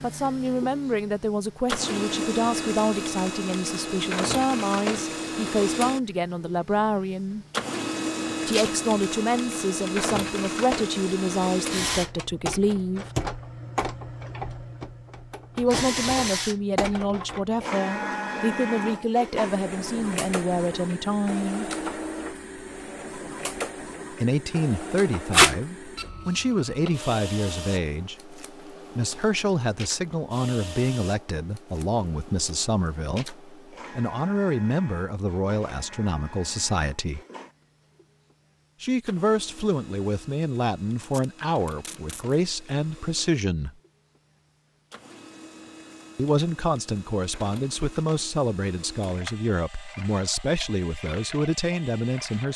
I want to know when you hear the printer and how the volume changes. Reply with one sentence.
You can hear the printer from 0.0 to 52.5 s, getting quieter.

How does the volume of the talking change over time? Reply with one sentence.
The loudness of the talking stays about the same.